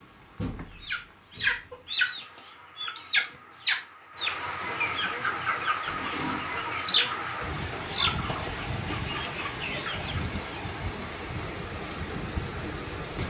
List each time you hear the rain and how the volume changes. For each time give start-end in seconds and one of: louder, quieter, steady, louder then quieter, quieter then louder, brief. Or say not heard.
0.0-13.2 louder.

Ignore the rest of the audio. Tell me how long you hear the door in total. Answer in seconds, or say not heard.
3 s.